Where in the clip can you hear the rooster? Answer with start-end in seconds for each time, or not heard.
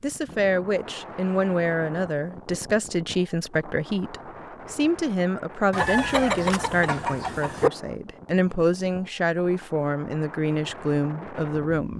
5.7-7.7.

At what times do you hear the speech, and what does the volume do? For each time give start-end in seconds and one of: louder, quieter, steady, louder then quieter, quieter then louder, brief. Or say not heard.
0.0-11.9 steady.